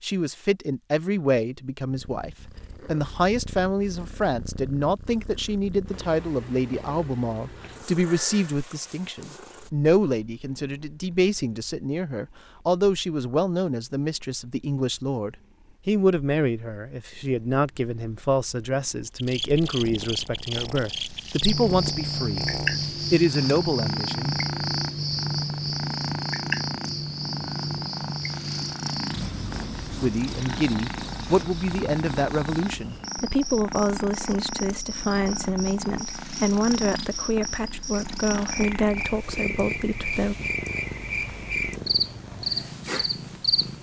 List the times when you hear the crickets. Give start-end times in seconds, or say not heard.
19.1-43.7.